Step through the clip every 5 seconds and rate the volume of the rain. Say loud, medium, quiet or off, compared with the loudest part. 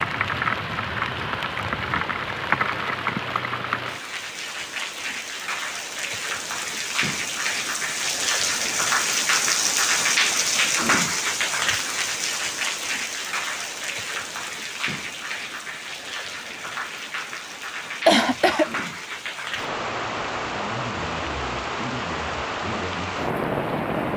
loud, loud, loud, medium, loud.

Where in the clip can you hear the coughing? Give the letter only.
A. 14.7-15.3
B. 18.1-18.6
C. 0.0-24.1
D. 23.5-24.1
B.